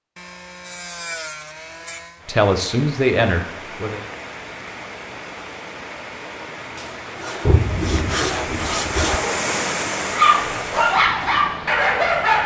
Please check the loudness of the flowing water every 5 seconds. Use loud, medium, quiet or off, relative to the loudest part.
medium, loud, loud.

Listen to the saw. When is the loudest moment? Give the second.
8 s.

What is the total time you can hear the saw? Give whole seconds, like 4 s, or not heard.
5 s.